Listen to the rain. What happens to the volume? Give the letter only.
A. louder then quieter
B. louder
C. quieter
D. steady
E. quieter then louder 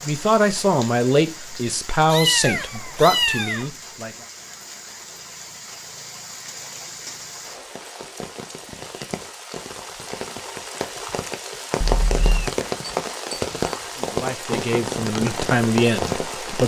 B.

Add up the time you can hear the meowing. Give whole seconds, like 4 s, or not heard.
2 s.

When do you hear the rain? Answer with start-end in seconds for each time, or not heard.
0.0-16.6.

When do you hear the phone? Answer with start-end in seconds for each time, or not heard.
not heard.